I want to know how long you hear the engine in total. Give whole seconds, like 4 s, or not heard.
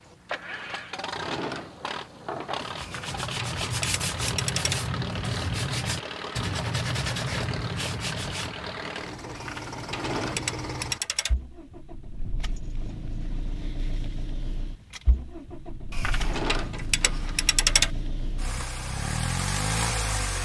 20 s.